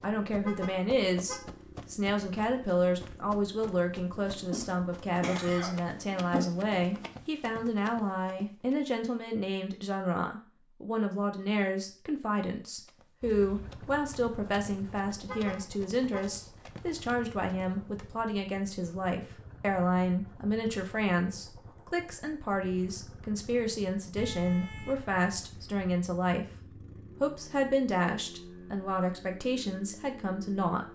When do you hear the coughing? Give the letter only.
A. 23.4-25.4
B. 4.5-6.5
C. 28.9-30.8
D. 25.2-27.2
B.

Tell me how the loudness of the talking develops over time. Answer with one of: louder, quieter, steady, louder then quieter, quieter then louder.
steady.